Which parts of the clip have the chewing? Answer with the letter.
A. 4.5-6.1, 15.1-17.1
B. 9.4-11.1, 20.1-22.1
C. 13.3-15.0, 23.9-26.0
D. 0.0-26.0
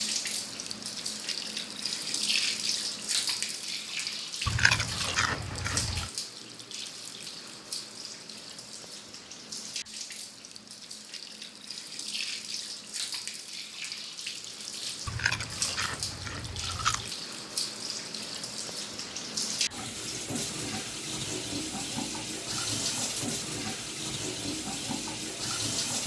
A.